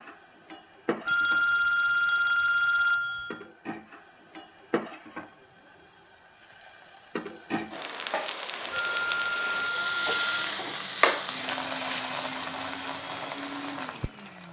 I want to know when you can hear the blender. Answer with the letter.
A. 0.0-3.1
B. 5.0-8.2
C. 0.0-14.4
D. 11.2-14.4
D.